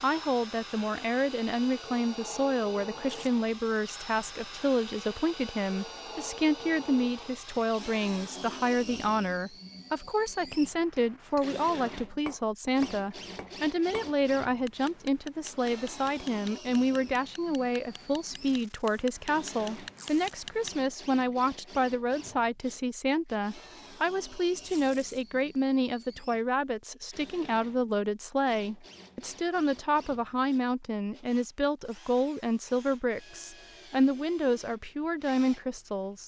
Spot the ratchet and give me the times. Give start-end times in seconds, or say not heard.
not heard.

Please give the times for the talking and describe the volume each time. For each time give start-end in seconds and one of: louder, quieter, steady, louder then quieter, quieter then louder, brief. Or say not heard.
0.0-36.2 steady.